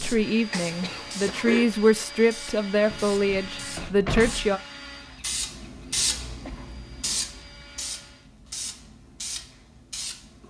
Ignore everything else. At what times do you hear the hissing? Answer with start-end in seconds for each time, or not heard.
0.0-10.4.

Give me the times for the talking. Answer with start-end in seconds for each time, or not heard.
0.0-4.6.